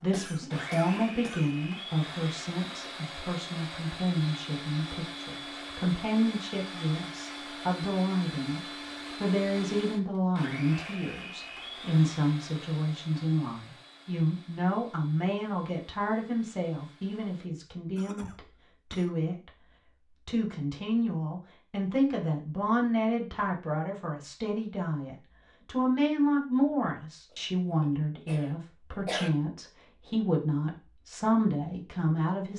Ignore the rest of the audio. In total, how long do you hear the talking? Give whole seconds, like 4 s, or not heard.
32 s.